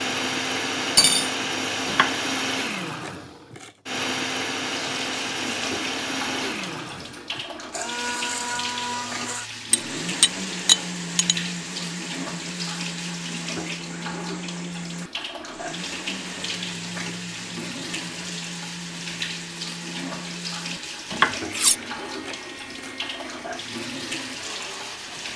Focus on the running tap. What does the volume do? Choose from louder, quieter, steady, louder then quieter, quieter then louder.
steady.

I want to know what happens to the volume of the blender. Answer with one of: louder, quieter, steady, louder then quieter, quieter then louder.
quieter.